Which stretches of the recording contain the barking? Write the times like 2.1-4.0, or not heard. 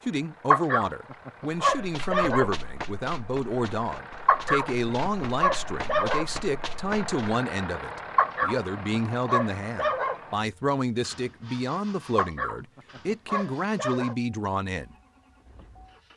0.5-2.5, 4.2-6.2, 8.2-10.2, 12.2-14.2.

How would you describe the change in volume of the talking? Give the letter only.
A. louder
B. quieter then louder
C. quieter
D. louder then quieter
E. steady
E.